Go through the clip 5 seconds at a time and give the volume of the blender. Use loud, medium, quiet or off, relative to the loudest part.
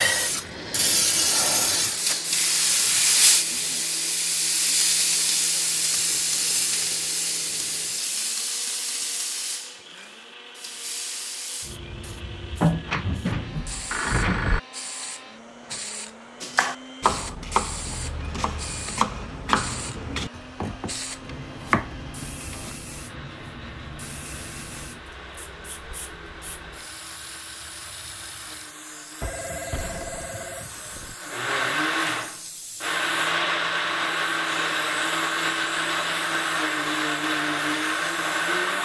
quiet, quiet, quiet, quiet, quiet, quiet, loud, loud.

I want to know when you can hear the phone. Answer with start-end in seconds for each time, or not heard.
12.6-14.6, 29.2-31.1.